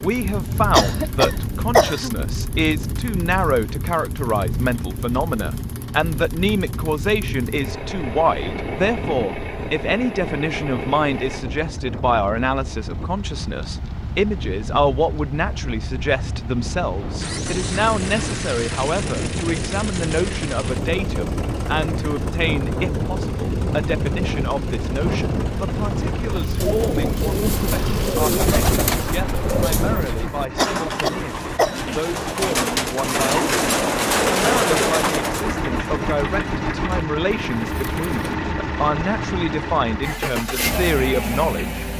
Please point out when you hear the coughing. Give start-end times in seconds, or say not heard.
0.7-2.1, 30.6-31.9.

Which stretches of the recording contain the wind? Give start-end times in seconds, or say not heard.
0.2-30.2.